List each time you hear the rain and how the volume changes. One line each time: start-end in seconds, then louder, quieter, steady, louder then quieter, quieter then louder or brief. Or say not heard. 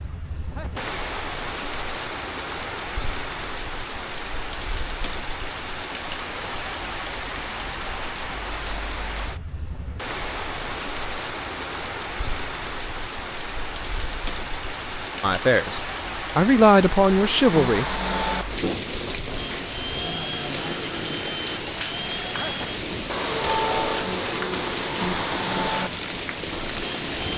0.0-27.3 steady.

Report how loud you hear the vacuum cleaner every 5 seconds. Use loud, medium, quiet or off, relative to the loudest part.
off, off, off, loud, loud, loud.